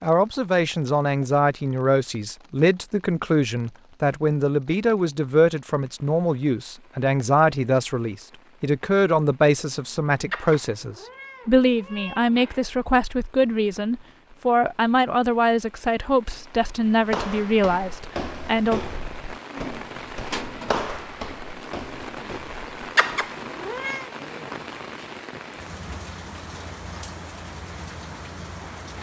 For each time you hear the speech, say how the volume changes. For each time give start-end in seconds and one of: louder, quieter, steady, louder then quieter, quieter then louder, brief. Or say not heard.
0.0-18.8 steady.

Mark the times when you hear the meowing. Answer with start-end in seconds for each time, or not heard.
10.3-12.6, 22.9-24.1.